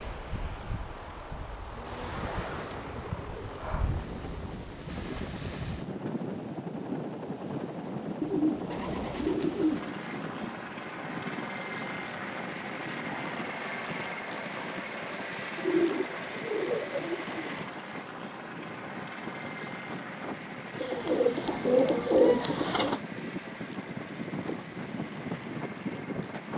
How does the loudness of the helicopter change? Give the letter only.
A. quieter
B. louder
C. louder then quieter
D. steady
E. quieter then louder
C.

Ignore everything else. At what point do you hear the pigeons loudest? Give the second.
22 s.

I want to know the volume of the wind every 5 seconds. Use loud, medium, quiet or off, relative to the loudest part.
medium, loud, medium, medium, loud, loud.